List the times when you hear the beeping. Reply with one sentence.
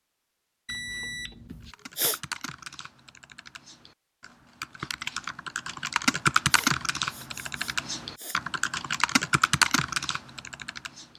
You can hear the beeping from 0.7 to 1.8 s.